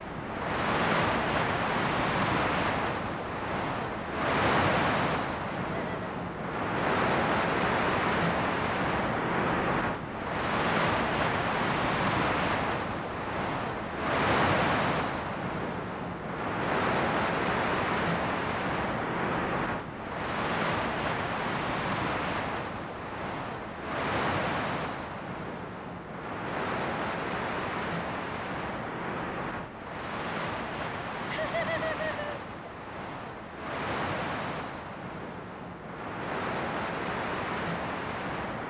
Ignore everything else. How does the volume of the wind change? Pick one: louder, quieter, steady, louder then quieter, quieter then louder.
quieter.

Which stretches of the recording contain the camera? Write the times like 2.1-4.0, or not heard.
not heard.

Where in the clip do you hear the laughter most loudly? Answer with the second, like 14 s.
32 s.